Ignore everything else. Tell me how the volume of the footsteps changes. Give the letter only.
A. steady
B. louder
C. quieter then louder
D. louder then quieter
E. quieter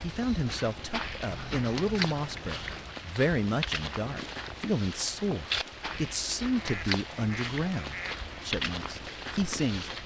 A.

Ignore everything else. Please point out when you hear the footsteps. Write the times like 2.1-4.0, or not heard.
0.0-10.0.